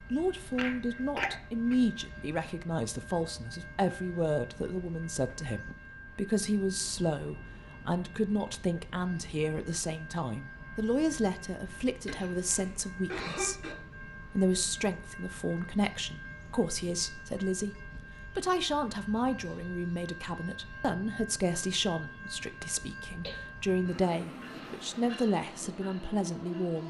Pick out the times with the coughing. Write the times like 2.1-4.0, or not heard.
0.6-1.8, 12.1-13.8, 22.5-23.4.